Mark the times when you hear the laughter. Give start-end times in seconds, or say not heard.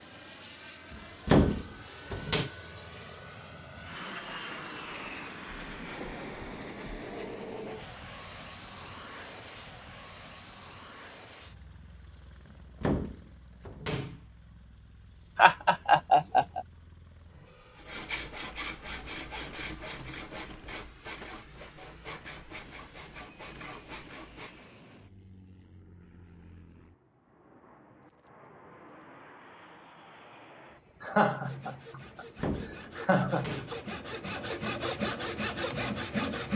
15.3-16.6, 31.0-33.5.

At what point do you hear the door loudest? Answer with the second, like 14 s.
1 s.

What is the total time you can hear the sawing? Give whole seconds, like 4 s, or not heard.
12 s.